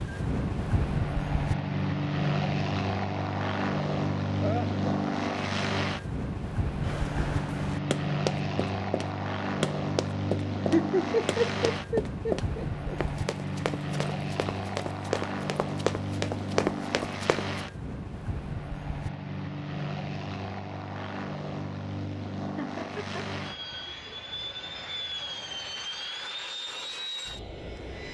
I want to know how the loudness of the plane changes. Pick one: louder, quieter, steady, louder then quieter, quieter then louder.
quieter.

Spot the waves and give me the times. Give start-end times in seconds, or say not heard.
not heard.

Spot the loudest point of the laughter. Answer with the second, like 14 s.
11 s.